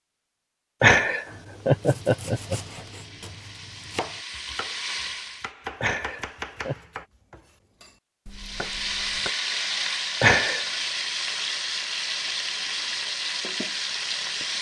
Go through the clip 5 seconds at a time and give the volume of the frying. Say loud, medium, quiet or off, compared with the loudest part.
medium, loud, loud.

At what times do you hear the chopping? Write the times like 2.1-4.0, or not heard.
1.2-9.3.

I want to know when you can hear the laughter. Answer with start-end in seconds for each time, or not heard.
0.8-2.8, 5.8-6.8, 10.2-10.7.